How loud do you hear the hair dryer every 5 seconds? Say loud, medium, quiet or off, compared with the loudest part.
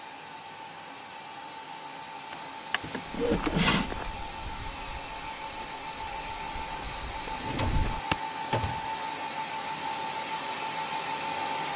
medium, loud, loud.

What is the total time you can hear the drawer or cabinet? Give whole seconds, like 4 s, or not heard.
3 s.